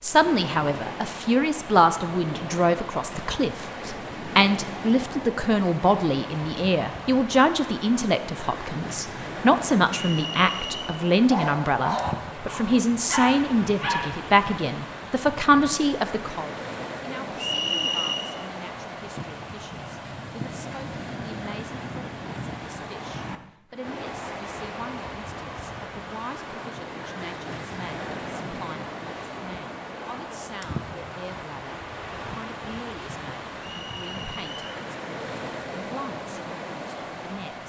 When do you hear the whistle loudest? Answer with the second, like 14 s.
18 s.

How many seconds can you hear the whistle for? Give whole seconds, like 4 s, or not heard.
3 s.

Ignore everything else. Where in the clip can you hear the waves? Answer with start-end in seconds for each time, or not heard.
0.0-37.6.